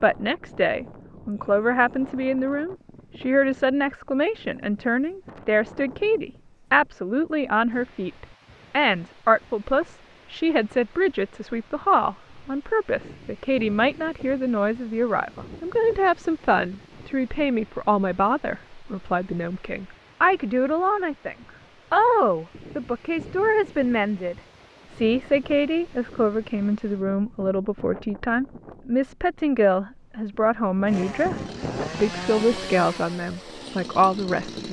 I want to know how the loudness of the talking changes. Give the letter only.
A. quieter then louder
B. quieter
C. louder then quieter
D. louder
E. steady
E.